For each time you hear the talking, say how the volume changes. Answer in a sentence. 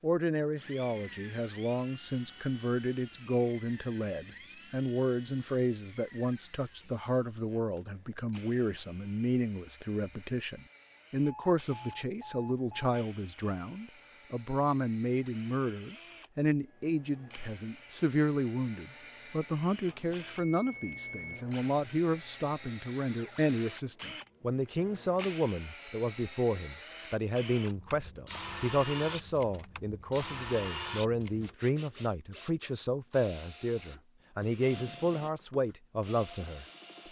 The talking can be heard from 0.0 to 36.6 s, at a steady volume.